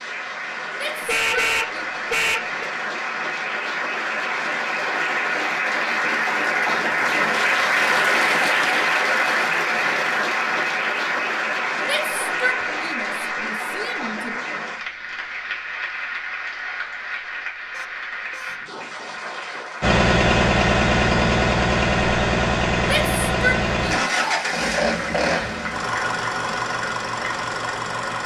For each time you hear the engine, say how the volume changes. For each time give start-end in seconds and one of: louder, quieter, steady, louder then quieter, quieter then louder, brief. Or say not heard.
19.8-28.2 quieter.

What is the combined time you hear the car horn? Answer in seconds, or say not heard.
2 s.